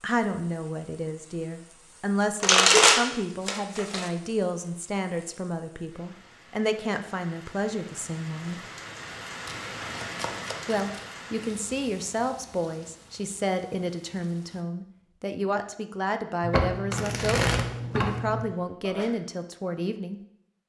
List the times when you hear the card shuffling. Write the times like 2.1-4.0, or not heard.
2.4-4.1, 9.4-11.1, 16.4-18.4.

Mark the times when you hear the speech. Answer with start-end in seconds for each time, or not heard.
0.0-8.6, 10.7-20.2.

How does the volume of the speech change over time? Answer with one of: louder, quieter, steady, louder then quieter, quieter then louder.
steady.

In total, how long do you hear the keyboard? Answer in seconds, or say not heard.
not heard.